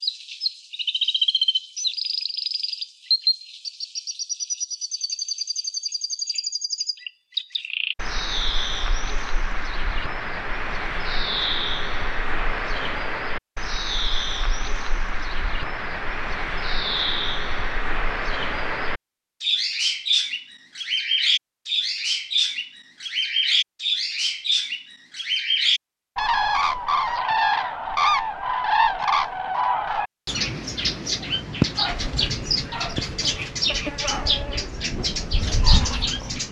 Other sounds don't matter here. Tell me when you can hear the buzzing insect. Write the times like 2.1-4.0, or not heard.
32.0-36.4.